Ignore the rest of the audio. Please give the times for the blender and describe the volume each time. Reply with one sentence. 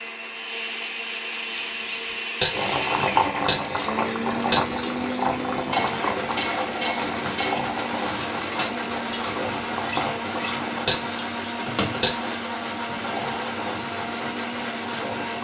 The blender can be heard from 0.0 to 15.3 s, at a steady volume.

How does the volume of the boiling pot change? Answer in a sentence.
The volume of the boiling pot goes down.